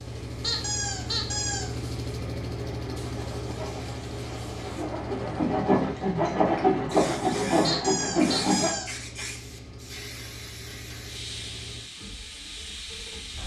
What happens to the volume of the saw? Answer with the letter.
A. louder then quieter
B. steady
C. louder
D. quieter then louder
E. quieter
C.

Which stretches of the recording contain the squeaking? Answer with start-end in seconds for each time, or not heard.
0.4-1.7, 7.6-8.9.